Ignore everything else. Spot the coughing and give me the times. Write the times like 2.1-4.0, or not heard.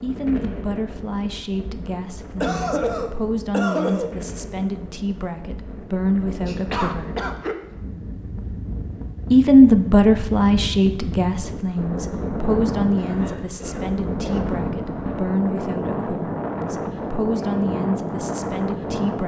2.4-4.2, 6.5-7.5, 12.9-14.4.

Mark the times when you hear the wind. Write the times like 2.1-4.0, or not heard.
0.0-19.2.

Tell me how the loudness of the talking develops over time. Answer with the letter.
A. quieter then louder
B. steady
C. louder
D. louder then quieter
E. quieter
D.